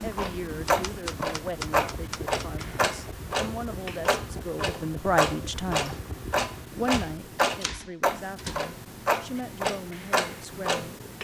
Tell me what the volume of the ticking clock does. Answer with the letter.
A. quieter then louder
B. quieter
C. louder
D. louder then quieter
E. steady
E.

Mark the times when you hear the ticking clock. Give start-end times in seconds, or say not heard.
0.0-11.1.